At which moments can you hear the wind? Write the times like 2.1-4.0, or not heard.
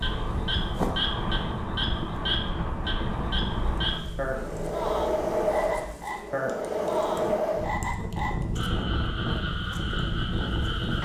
0.0-11.0.